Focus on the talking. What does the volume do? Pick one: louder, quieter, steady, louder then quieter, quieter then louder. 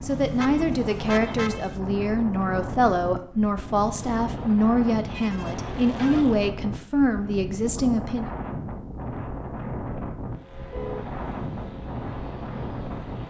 steady.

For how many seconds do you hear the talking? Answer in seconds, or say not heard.
8 s.